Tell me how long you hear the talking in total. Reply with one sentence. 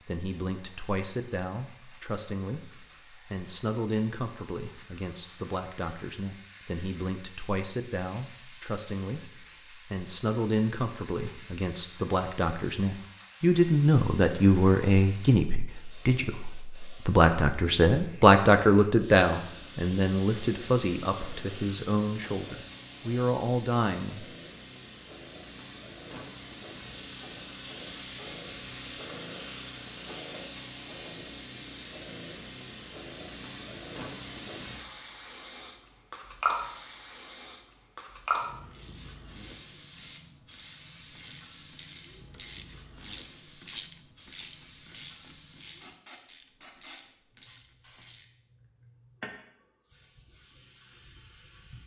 You can hear the talking for 24 seconds altogether.